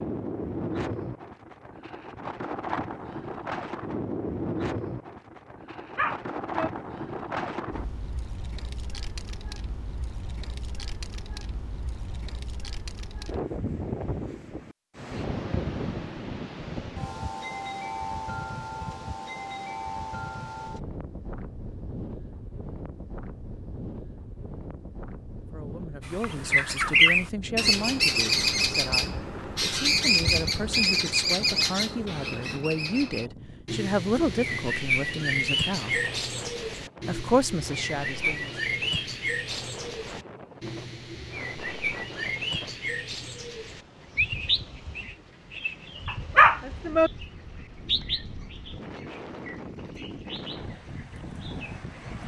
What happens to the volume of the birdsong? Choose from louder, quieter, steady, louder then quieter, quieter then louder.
quieter.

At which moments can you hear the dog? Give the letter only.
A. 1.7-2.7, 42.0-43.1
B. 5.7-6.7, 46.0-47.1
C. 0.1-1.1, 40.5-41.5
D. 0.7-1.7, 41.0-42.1
B.